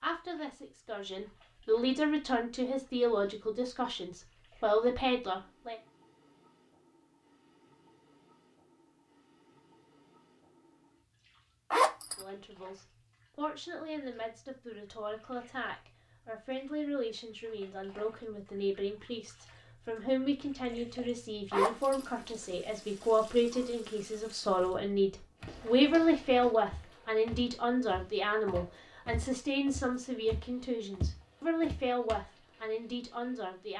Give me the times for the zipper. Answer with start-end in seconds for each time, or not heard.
11.7-12.2, 21.5-22.1.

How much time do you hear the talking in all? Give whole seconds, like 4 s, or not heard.
27 s.